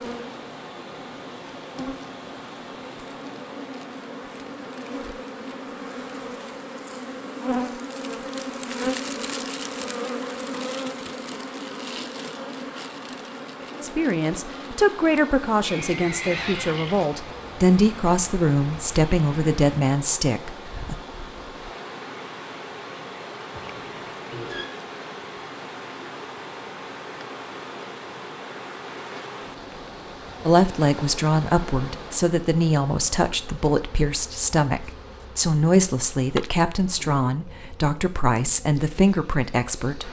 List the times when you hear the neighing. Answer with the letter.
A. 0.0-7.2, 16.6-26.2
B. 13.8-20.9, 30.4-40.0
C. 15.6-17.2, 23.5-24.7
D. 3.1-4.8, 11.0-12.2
C.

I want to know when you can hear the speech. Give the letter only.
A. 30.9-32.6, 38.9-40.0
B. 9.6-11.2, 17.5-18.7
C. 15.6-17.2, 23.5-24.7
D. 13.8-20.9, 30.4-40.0
D.